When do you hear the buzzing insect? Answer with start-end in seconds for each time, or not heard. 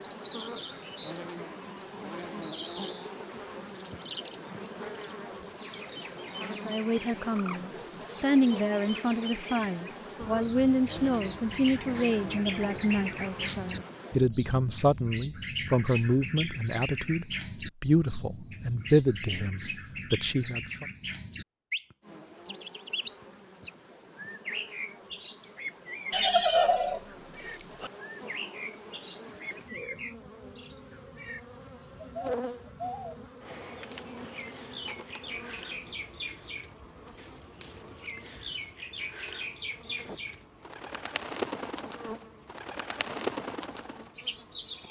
0.0-14.2, 22.0-44.8.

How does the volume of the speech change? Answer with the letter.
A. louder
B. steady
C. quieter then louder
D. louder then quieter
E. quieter
B.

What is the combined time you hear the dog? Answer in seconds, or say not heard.
not heard.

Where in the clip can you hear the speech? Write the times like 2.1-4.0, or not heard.
6.5-20.9.